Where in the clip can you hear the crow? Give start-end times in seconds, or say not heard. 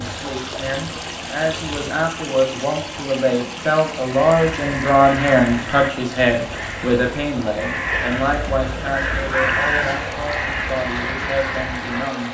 4.0-12.1.